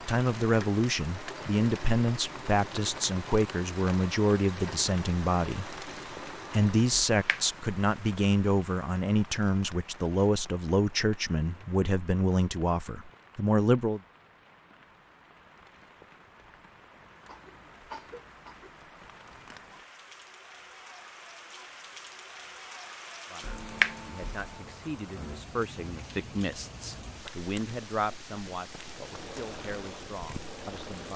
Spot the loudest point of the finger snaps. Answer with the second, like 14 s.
24 s.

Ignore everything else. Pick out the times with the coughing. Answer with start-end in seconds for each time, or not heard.
17.2-18.7.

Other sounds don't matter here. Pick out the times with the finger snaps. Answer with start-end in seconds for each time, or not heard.
6.9-7.4, 23.5-24.4.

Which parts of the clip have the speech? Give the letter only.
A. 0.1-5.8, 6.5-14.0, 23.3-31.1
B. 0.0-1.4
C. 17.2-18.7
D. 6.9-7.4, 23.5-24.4
A.